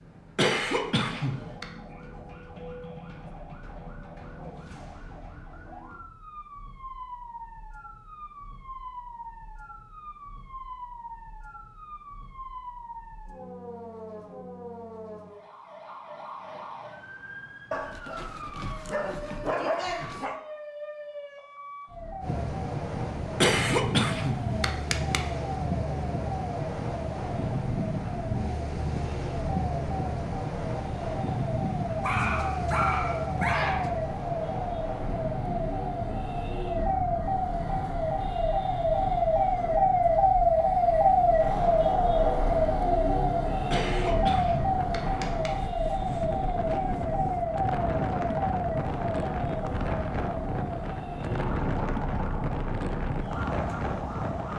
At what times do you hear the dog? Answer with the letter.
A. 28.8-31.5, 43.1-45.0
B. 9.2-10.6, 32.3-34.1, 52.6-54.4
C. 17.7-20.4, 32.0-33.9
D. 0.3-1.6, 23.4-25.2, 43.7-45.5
C.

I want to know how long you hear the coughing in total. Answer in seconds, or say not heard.
5 s.